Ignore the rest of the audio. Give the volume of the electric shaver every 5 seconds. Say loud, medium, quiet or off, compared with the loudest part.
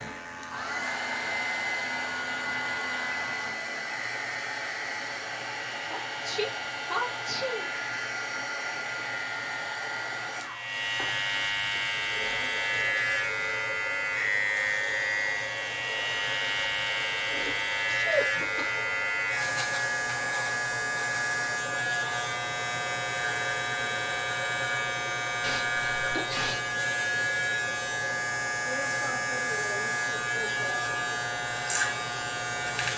medium, medium, loud, loud, loud, loud, loud.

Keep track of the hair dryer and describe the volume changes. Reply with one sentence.
The loudness of the hair dryer goes down.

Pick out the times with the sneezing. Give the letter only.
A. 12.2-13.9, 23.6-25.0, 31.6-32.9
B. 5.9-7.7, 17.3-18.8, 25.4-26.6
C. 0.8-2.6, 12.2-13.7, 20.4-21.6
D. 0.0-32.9
B.